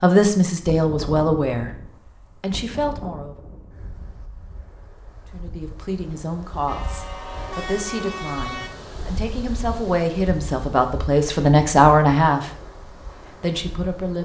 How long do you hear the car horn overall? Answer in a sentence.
The car horn can be heard for 2 seconds in total.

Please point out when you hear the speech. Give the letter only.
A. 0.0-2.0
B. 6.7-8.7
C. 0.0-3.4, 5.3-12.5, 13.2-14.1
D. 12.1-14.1
C.